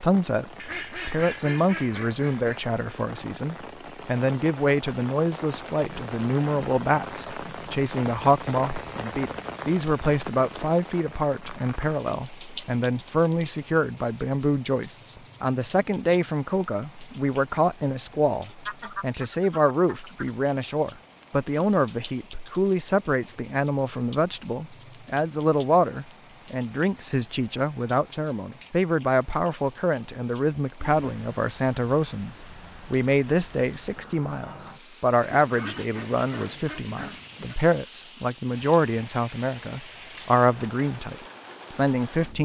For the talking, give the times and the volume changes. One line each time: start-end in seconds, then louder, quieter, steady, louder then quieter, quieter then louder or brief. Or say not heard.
0.0-42.4 steady.